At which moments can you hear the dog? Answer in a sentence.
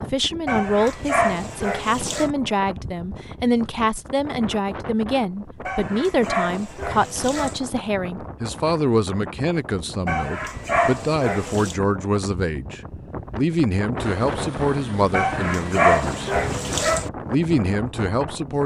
The dog can be heard from 0.5 to 2.3 s, from 5.7 to 7.6 s, from 10.1 to 11.8 s and from 15.1 to 17.1 s.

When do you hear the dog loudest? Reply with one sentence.
The volume of the dog peaks at 16 seconds.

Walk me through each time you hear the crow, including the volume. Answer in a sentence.
You can't hear the crow here.